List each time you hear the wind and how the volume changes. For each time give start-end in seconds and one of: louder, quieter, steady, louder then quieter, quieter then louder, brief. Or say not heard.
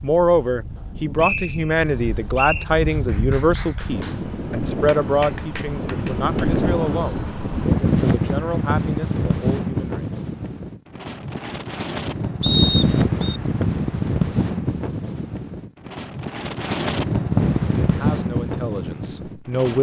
0.0-19.7 louder.